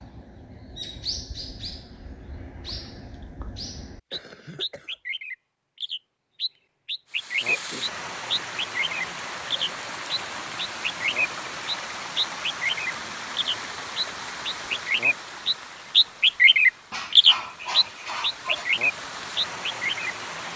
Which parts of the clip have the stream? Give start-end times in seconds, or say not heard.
7.0-20.5.